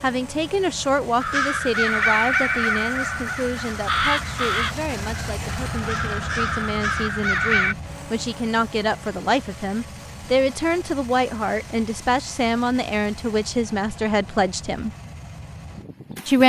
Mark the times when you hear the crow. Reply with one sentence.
You can hear the crow from 1.2 to 7.8 s.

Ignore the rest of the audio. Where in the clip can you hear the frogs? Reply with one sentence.
You can't hear the frogs here.